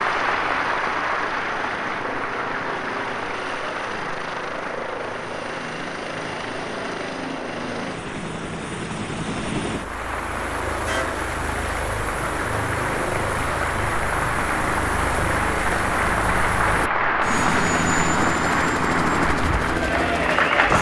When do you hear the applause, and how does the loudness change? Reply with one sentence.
You can hear the applause from 0.0 to 20.7 s, getting quieter then louder.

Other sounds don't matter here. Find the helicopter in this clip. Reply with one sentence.
The helicopter can be heard from 0.0 to 20.7 s.